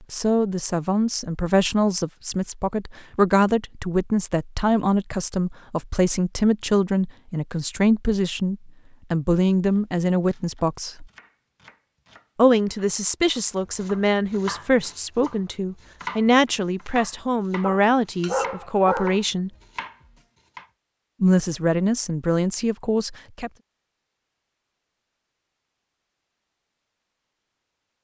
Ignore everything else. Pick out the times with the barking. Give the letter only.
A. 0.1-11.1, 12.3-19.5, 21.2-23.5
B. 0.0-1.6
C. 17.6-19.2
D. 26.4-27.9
C.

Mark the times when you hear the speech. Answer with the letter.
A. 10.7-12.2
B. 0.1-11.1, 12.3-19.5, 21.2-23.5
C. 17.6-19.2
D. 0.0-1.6
B.